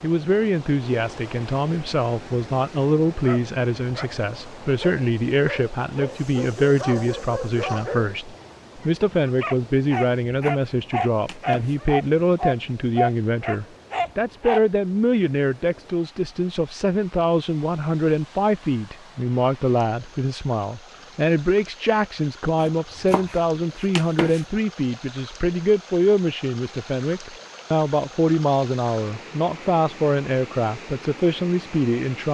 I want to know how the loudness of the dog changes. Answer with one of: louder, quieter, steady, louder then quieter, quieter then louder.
louder.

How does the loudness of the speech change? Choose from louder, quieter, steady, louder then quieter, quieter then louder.
steady.